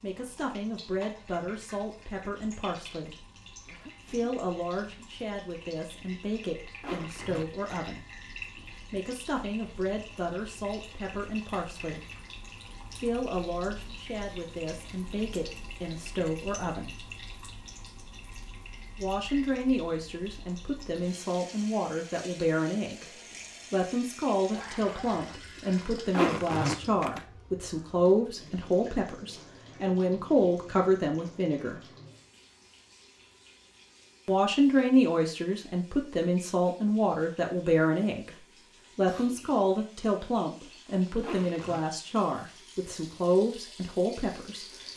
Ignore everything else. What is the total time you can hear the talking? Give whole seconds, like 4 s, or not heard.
38 s.